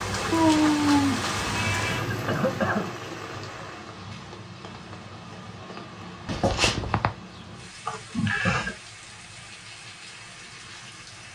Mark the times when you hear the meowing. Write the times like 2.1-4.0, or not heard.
0.3-2.0, 6.2-7.1.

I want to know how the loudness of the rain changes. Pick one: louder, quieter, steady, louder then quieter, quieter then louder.
quieter.